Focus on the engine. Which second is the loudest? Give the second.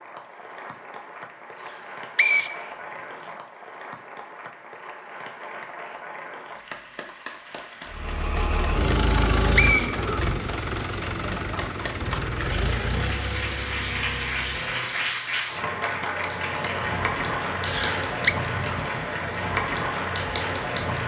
9 s.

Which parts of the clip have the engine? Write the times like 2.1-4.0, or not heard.
7.9-15.2.